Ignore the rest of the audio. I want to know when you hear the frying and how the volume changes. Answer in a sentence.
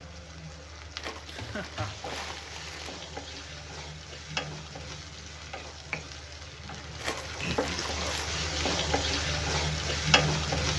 The frying can be heard from 0.0 to 10.7 s, getting louder.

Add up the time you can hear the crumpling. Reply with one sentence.
You can hear the crumpling for 3 seconds altogether.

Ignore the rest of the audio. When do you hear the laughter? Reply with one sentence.
The laughter can be heard from 1.2 to 2.2 s and from 7.4 to 8.3 s.